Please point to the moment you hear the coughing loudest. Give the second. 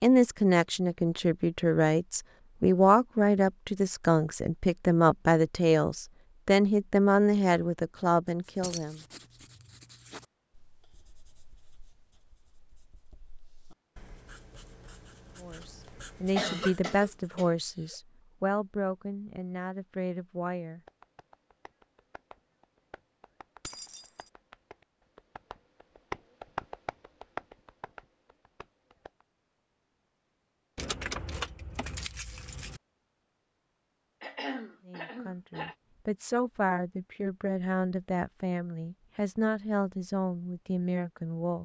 17 s.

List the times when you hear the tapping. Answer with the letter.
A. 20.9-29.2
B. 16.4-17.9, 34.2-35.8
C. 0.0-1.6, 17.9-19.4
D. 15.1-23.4
A.